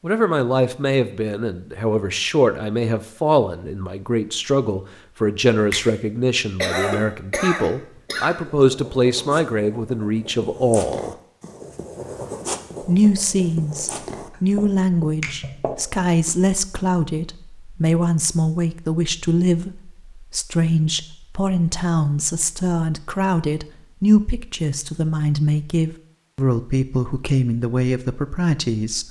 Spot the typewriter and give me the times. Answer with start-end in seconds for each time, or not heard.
not heard.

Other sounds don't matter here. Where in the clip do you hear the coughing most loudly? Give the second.
7 s.